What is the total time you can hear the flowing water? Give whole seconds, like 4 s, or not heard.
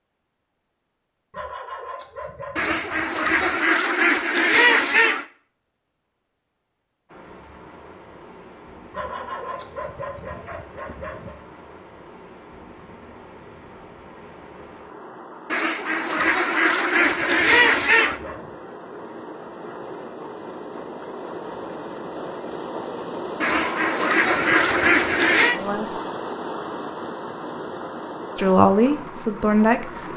23 s.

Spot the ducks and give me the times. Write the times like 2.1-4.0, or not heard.
2.5-5.2, 15.5-18.2, 23.4-25.6.